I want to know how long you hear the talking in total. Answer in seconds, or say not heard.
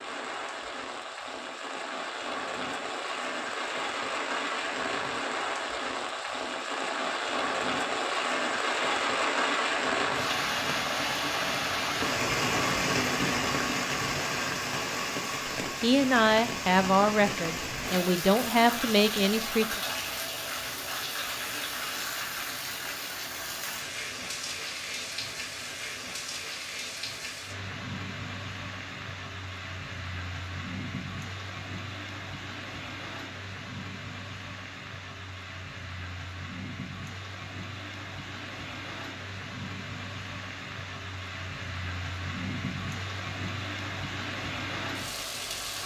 4 s.